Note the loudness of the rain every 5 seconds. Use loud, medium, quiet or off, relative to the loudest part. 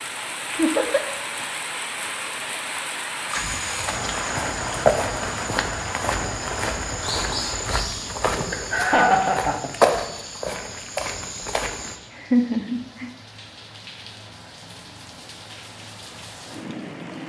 loud, loud, quiet, medium.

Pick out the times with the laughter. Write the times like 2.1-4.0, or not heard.
0.6-1.0, 8.5-9.7, 12.2-13.1.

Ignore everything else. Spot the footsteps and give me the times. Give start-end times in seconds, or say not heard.
3.3-12.0.